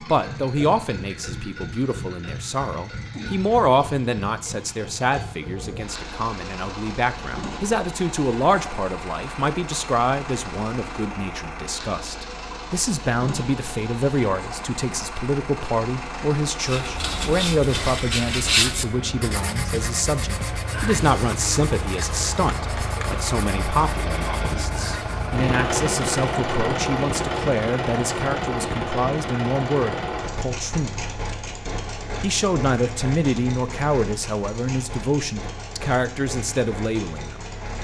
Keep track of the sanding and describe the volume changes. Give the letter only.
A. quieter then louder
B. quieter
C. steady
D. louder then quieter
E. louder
B.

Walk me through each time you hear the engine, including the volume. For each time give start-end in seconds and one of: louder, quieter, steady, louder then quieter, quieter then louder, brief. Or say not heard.
0.0-37.7 louder then quieter.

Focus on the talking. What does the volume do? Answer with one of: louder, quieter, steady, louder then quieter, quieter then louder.
steady.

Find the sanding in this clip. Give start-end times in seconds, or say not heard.
16.6-25.4.